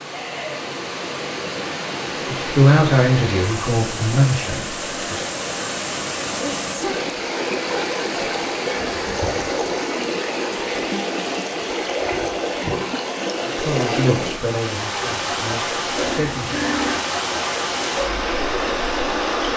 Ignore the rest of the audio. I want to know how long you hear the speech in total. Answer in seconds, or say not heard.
6 s.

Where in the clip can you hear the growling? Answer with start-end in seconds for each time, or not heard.
15.9-16.9.